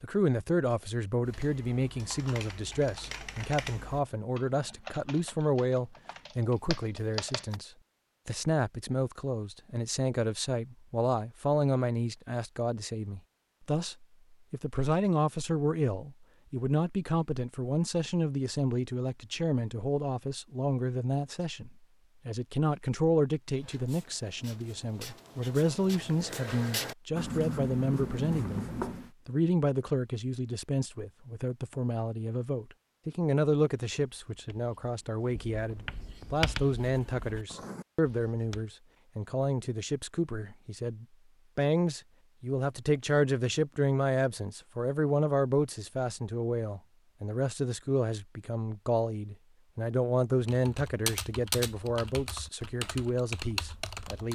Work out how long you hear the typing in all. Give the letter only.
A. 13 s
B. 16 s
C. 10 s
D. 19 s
C.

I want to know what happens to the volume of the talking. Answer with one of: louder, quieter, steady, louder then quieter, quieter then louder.
steady.